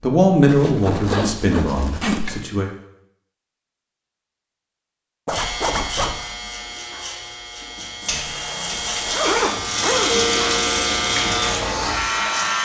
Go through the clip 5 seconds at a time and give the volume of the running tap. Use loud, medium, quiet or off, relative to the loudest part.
off, loud, loud.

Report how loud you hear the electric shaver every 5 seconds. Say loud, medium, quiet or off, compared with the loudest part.
off, medium, loud.